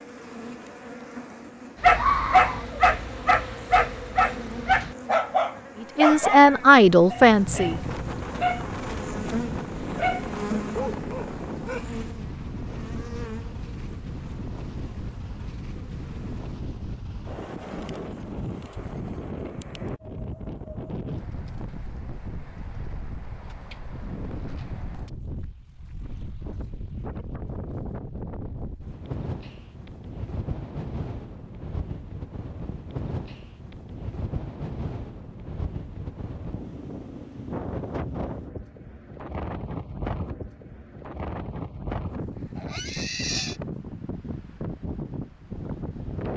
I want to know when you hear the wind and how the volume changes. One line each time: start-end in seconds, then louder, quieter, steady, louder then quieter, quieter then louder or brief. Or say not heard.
7.4-46.3 steady.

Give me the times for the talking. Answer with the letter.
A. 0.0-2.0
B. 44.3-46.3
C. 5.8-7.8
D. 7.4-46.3
C.